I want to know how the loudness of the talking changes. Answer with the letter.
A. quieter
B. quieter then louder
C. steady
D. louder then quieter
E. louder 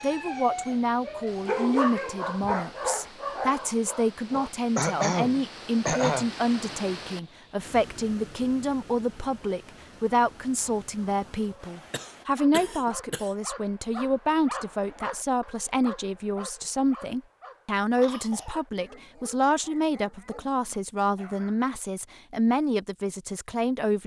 C.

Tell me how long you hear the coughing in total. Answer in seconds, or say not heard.
4 s.